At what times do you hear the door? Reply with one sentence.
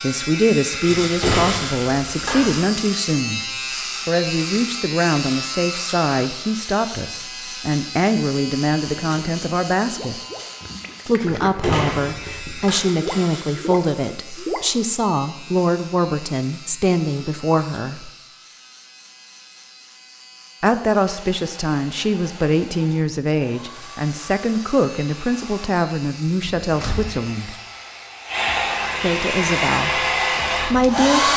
You can hear the door from 0.8 to 2.6 s, from 11.4 to 12.8 s and from 26.6 to 27.1 s.